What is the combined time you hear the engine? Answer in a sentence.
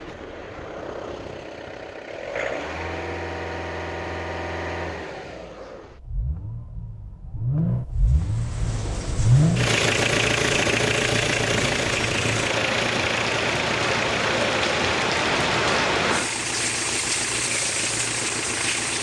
You can hear the engine for 19 seconds altogether.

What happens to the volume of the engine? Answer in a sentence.
The loudness of the engine goes up, then down.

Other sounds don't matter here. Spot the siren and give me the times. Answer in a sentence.
The siren can't be heard in this clip.